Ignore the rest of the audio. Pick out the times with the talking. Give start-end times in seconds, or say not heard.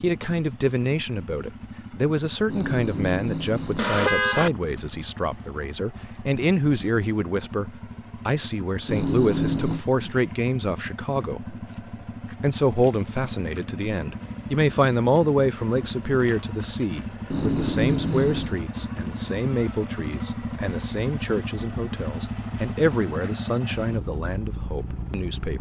0.0-11.6, 12.3-25.5.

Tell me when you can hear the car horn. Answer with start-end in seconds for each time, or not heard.
2.5-4.5, 8.8-9.8, 17.3-18.6.